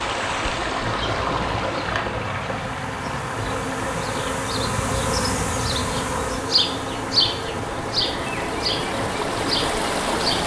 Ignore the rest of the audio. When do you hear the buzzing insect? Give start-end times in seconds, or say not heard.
0.0-10.4.